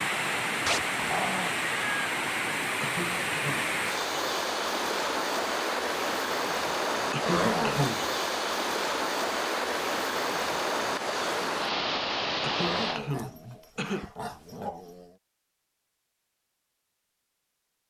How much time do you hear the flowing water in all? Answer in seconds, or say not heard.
13 s.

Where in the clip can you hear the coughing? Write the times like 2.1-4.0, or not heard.
2.8-3.6, 7.1-8.1, 12.4-14.1.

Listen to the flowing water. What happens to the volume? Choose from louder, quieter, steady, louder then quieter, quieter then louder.
steady.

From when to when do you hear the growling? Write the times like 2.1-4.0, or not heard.
0.7-1.5, 7.2-7.9, 12.6-15.2.